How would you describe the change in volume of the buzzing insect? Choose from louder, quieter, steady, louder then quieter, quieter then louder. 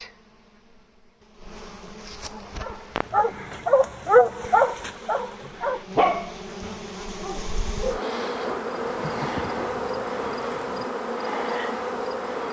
louder.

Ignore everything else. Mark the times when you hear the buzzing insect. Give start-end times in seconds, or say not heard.
0.0-12.4.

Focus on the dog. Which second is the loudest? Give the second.
4 s.